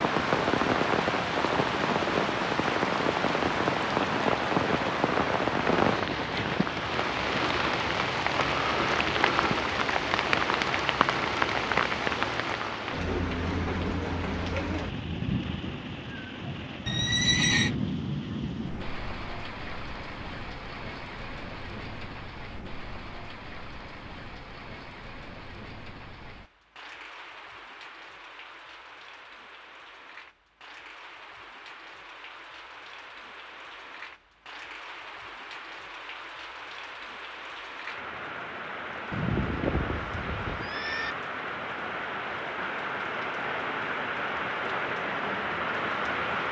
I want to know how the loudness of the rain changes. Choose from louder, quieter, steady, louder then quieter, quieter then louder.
quieter then louder.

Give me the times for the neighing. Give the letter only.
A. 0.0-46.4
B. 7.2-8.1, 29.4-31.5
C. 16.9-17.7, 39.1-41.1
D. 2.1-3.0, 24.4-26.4
C.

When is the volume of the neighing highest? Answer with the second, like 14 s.
17 s.